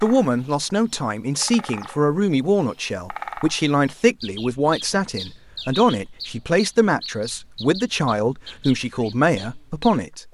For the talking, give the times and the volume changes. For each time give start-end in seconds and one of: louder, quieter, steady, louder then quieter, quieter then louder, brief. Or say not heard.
0.0-10.2 steady.